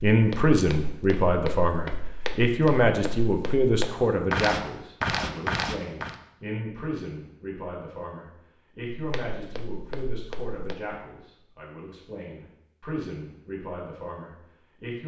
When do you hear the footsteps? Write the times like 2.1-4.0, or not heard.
0.1-6.2, 8.9-10.8.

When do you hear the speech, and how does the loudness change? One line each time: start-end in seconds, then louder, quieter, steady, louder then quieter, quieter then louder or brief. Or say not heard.
0.0-15.0 quieter.